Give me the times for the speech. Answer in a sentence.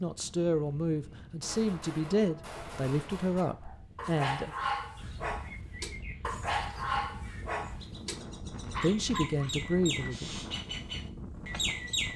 The speech can be heard from 0.0 to 4.5 s and from 8.8 to 10.3 s.